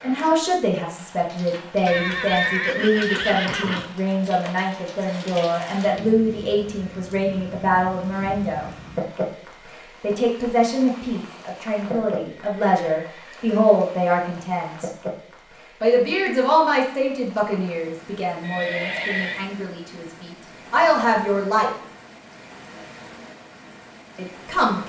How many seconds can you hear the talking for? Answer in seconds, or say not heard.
20 s.